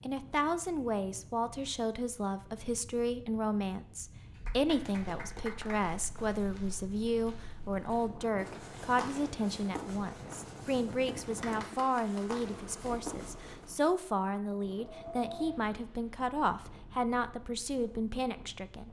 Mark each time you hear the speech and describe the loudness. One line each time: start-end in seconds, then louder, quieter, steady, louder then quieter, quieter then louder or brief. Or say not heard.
0.0-18.8 steady.